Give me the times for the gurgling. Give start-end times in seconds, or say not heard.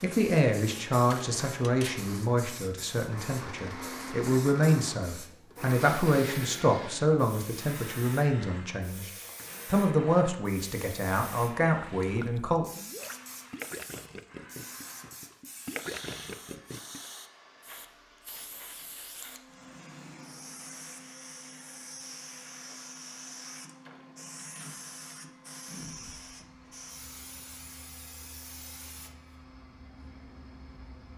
11.9-17.1.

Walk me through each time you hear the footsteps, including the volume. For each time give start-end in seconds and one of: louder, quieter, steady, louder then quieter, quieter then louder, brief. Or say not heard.
not heard.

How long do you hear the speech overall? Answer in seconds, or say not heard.
12 s.